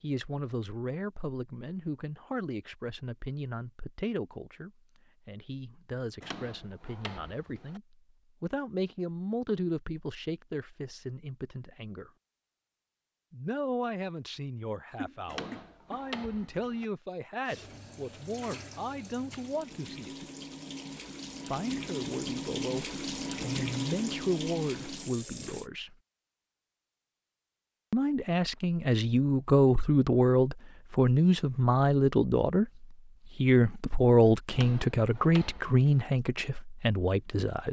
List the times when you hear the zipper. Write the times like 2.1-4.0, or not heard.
not heard.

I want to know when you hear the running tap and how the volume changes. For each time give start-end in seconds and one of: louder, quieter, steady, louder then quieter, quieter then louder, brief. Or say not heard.
17.4-25.7 louder.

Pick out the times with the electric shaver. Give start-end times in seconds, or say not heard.
not heard.